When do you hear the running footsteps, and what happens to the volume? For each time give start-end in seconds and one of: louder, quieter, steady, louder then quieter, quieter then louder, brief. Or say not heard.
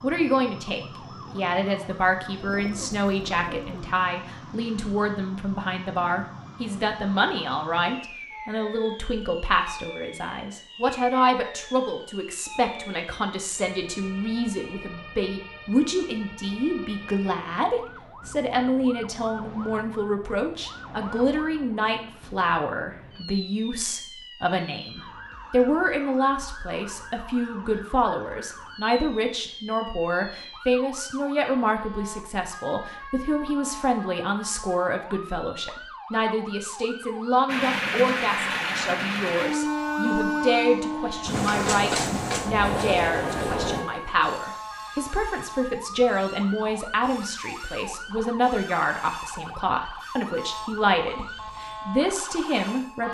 not heard.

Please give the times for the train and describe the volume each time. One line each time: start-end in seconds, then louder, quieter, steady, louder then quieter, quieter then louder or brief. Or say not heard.
37.5-53.0 quieter.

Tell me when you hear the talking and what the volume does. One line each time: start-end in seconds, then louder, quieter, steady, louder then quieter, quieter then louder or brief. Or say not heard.
0.0-53.0 steady.